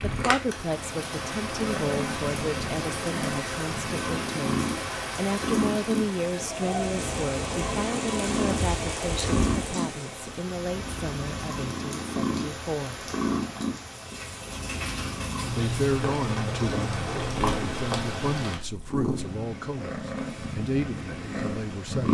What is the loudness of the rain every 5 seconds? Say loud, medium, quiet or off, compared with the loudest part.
loud, loud, medium, loud, off.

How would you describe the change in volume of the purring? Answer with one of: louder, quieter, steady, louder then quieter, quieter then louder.
steady.